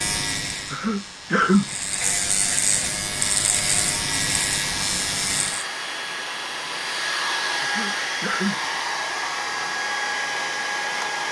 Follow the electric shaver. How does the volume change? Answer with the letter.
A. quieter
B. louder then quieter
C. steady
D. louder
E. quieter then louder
D.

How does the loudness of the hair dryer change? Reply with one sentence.
The loudness of the hair dryer goes up.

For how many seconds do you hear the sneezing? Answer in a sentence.
You can hear the sneezing for 2 seconds altogether.